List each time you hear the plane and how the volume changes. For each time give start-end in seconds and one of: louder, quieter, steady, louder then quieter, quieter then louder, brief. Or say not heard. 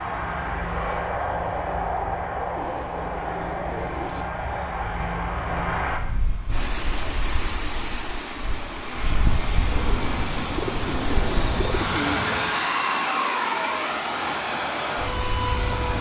0.0-15.9 quieter then louder.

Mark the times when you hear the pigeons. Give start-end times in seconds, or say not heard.
2.5-4.2, 9.7-12.6.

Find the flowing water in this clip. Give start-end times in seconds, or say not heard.
6.5-15.9.